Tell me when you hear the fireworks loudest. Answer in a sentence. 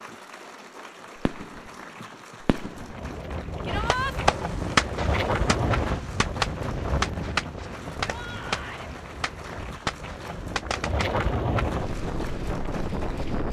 The volume of the fireworks peaks at 5 seconds.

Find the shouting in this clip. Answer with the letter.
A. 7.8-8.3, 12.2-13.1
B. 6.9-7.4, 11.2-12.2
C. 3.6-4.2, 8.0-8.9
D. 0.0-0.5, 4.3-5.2
C.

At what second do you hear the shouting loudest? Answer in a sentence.
The volume of the shouting peaks at 4 seconds.